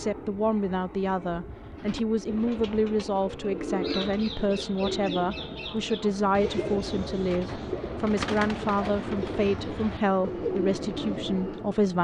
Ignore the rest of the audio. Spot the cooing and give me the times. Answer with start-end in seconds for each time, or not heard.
1.8-11.8.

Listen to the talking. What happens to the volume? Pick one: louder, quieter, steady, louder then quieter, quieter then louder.
steady.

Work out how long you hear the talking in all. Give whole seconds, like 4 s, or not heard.
12 s.